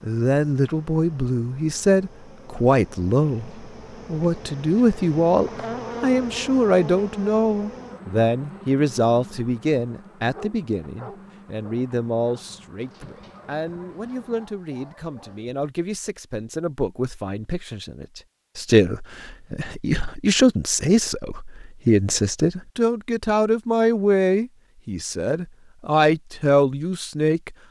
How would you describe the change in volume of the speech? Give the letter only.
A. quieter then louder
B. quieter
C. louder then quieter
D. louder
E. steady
A.